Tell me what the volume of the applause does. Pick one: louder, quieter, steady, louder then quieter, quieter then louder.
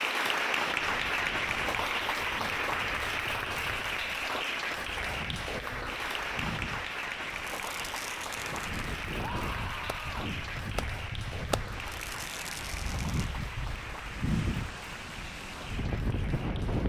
quieter.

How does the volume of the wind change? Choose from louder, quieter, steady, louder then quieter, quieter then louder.
louder.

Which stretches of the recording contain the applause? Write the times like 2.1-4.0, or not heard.
0.0-16.8.